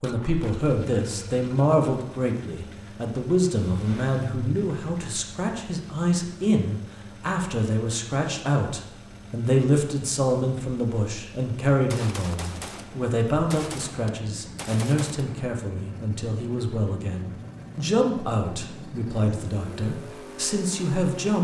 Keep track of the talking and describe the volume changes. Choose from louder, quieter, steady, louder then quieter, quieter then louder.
steady.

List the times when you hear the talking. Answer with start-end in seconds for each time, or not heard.
0.0-21.3.